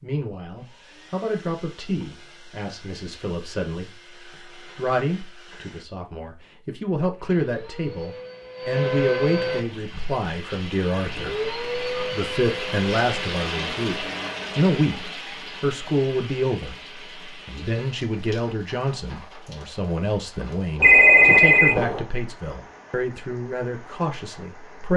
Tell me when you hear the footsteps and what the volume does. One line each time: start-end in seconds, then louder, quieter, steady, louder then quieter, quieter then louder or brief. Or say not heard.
not heard.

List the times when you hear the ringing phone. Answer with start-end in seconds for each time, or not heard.
20.8-22.0.